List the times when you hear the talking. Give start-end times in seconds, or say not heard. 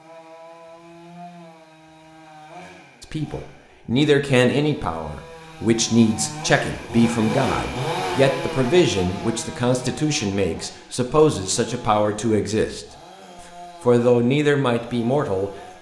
3.0-12.8, 13.8-15.5.